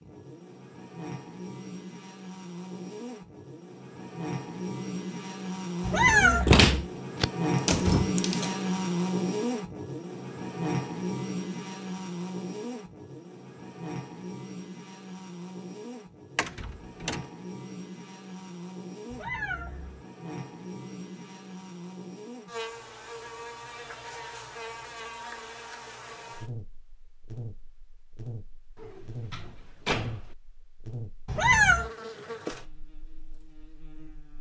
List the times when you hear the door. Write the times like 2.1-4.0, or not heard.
6.5-8.5, 16.4-17.2, 28.8-30.4.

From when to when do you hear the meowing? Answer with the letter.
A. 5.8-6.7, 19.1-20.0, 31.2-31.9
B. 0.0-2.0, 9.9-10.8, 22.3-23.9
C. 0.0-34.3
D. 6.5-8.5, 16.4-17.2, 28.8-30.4
A.